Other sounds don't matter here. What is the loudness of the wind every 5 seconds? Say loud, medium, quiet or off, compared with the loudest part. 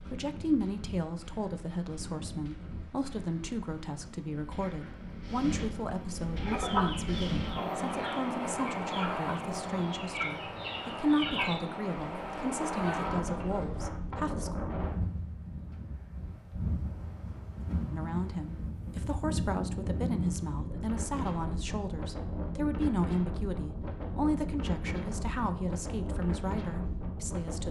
medium, loud, loud, loud, loud, loud.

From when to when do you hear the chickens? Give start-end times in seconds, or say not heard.
6.3-13.8.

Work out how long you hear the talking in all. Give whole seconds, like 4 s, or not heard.
24 s.